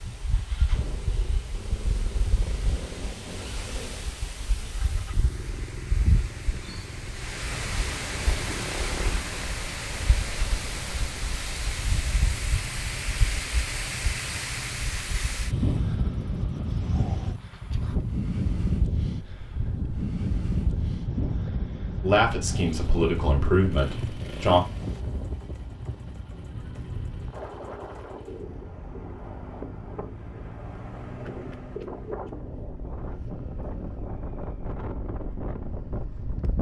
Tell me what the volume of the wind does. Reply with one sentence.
The loudness of the wind goes up, then down.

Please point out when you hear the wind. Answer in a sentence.
You can hear the wind from 0.0 to 36.5 s.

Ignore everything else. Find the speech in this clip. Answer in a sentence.
You can hear the speech from 22.0 to 24.6 s.